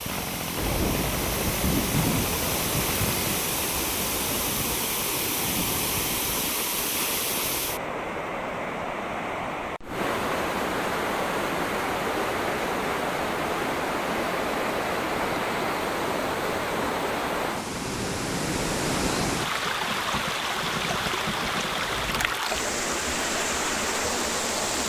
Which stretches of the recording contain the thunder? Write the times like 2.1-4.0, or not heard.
0.6-4.5, 17.9-22.4.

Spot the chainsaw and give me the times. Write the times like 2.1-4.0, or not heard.
0.0-3.5.